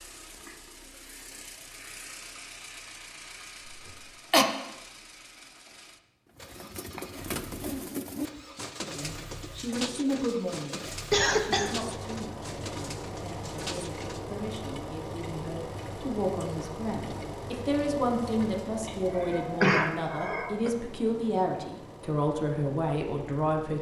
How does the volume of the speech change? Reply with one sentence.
The volume of the speech goes down, then up.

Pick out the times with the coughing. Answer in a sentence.
The coughing can be heard from 3.6 to 4.5 s, from 11.1 to 11.8 s and from 18.9 to 20.7 s.